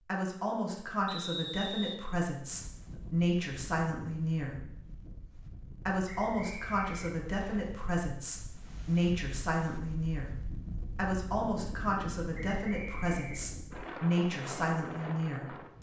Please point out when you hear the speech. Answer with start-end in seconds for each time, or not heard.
0.1-4.7, 5.8-15.7.